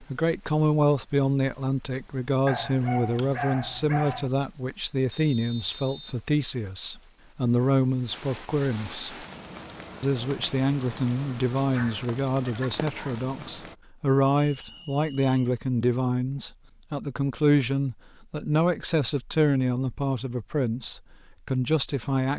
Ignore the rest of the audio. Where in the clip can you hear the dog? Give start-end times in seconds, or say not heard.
2.5-4.3, 11.8-13.2.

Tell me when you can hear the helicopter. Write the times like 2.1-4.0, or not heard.
not heard.